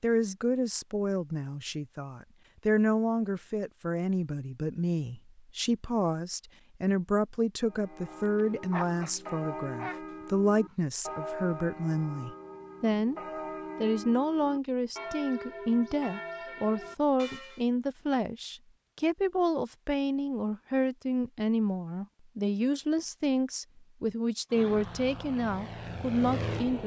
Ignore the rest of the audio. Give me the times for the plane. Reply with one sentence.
You can hear the plane from 24.5 to 26.8 s.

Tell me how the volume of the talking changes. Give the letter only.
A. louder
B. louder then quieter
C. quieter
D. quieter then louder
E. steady
E.